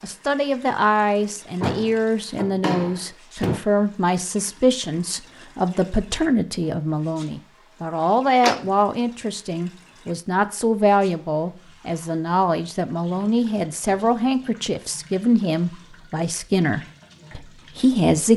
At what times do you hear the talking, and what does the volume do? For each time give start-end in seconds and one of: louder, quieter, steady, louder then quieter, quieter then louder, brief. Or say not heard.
0.0-18.3 steady.